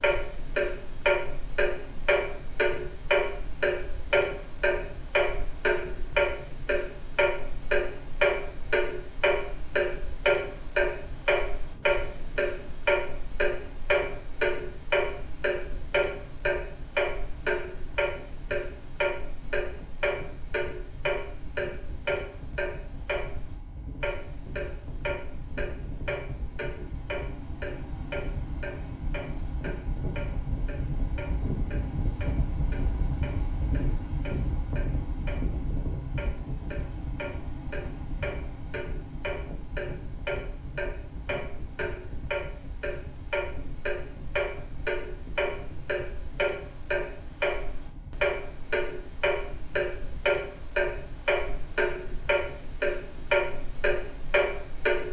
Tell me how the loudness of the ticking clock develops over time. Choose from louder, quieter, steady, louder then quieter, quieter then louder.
quieter then louder.